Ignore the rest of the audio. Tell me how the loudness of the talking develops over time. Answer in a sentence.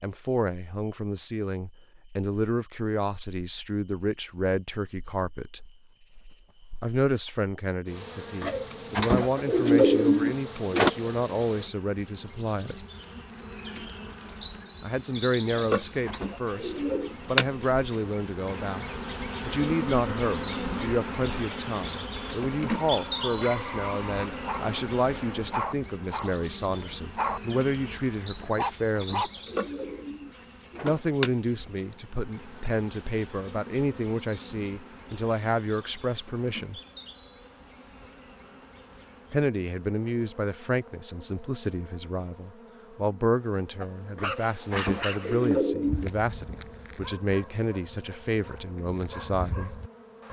The volume of the talking stays about the same.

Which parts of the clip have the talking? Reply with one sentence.
You can hear the talking from 0.0 to 5.7 s, from 6.8 to 12.8 s, from 14.8 to 29.3 s, from 30.8 to 36.8 s and from 39.3 to 49.8 s.